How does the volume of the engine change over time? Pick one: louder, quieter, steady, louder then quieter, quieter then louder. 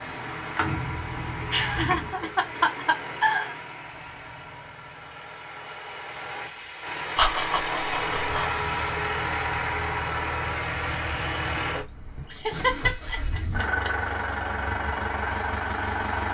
quieter then louder.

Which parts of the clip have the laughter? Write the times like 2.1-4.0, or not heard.
1.5-3.5, 7.2-8.6, 12.3-13.9.